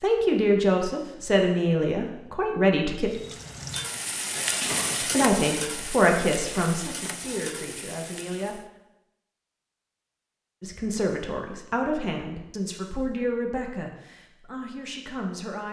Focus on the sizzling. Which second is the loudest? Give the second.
5 s.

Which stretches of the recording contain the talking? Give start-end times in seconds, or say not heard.
0.0-3.1, 5.0-8.6, 10.6-15.6.